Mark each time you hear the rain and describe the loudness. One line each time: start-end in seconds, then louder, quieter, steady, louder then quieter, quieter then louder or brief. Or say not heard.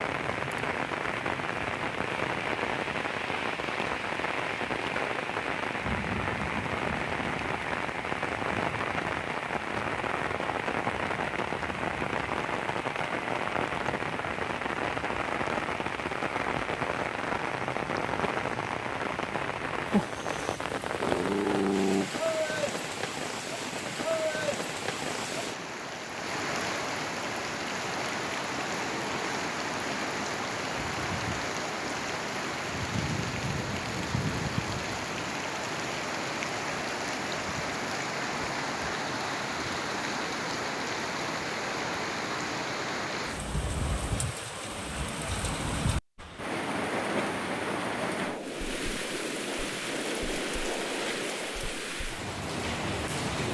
0.0-53.4 steady.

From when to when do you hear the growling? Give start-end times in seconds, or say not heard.
21.0-22.1.